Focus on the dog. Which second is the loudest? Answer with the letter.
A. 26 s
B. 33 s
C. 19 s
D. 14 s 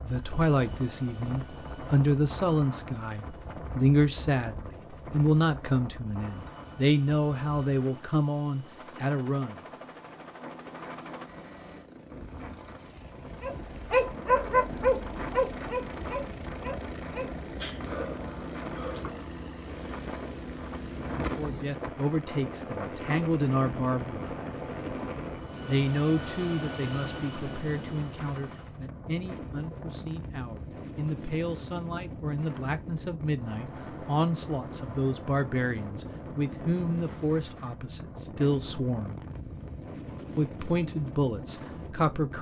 D.